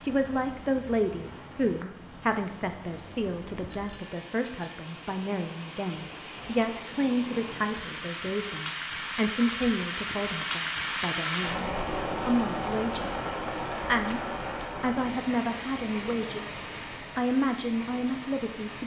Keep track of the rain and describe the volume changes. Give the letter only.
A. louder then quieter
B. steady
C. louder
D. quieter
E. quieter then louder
A.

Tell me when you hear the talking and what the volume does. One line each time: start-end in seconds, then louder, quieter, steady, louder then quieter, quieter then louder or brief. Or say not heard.
0.0-18.8 steady.